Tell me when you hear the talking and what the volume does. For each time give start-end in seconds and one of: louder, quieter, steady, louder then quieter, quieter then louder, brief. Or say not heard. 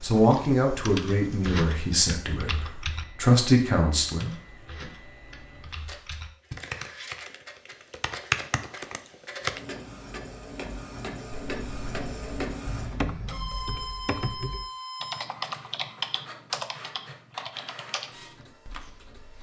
0.0-4.3 quieter then louder.